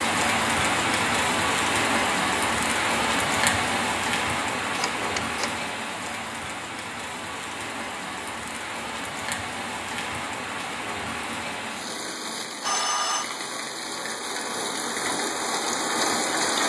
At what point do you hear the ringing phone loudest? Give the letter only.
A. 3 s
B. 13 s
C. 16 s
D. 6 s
B.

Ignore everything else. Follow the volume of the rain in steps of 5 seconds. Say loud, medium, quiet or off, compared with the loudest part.
loud, medium, medium, loud.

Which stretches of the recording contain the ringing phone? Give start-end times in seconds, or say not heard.
4.8-5.7, 12.6-13.2.